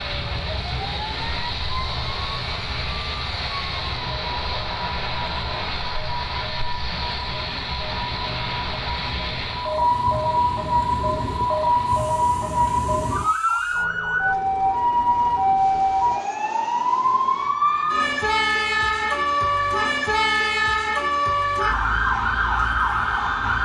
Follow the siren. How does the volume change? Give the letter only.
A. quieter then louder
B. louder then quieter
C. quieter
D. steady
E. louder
E.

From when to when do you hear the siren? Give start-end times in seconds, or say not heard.
0.0-23.6.